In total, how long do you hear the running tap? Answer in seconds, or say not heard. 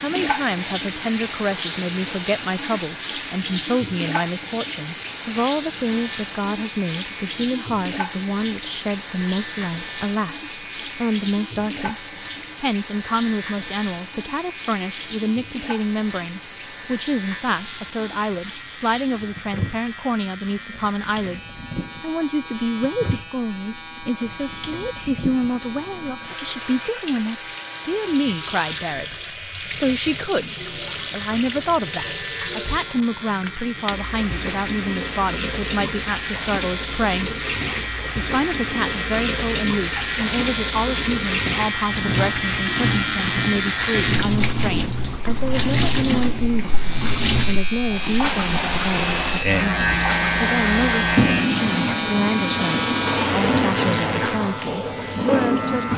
56 s.